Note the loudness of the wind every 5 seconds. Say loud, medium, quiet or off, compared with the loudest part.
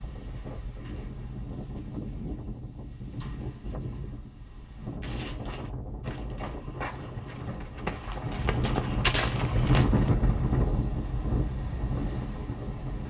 medium, loud, loud.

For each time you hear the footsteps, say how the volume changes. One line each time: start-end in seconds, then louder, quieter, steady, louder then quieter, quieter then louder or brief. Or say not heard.
5.0-10.1 louder.